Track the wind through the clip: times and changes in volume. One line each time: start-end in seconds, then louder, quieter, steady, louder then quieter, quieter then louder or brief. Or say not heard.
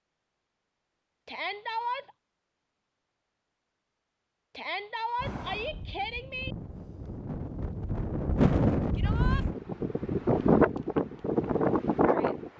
5.2-12.5 louder.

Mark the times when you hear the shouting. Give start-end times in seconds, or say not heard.
1.2-2.1, 4.5-6.5, 8.9-9.4.